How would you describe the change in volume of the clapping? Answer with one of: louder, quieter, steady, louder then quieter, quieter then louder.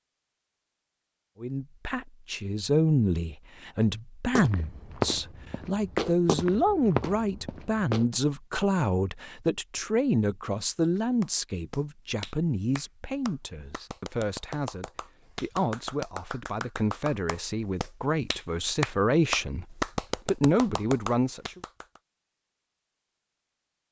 louder.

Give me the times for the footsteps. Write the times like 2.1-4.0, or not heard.
4.3-8.1.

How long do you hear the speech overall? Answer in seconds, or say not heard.
20 s.